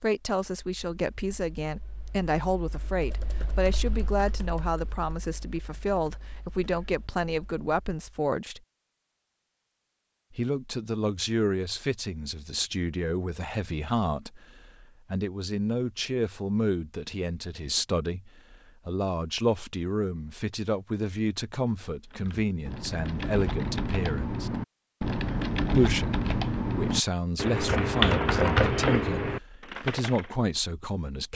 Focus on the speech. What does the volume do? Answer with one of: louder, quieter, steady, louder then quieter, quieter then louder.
steady.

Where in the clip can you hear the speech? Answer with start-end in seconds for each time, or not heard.
0.0-8.6, 10.3-24.5, 25.8-31.3.